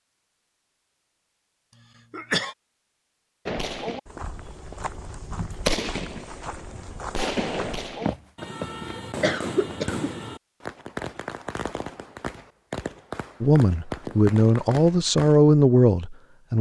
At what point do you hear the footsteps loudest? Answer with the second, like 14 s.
8 s.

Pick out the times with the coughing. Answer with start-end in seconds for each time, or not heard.
1.7-2.5, 8.4-10.1.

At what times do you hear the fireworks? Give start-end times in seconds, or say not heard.
3.5-15.4.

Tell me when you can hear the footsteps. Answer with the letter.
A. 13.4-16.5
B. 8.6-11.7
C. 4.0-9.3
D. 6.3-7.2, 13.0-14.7
C.